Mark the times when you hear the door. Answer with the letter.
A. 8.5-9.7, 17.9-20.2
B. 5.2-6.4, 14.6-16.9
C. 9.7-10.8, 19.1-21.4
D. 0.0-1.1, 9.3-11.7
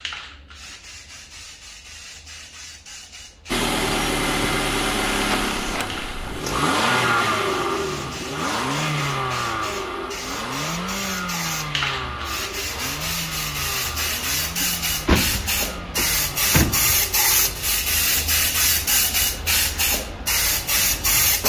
B.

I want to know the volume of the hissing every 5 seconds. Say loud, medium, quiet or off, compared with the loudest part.
quiet, quiet, medium, loud, loud.